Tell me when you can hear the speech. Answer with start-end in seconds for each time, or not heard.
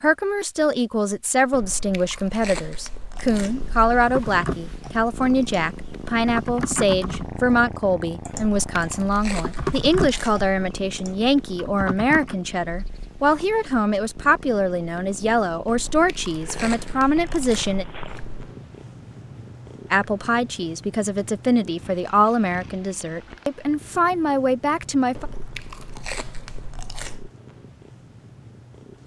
0.0-17.9, 19.9-25.2.